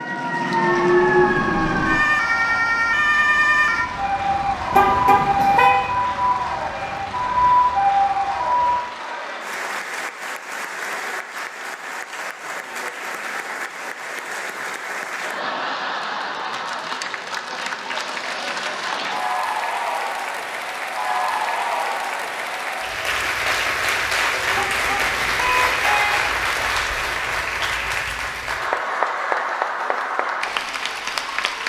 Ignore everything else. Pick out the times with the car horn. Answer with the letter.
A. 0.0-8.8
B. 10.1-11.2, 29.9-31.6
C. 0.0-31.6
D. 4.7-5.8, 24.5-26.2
D.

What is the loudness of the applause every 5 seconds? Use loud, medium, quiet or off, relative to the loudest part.
medium, medium, medium, loud, loud, loud, loud.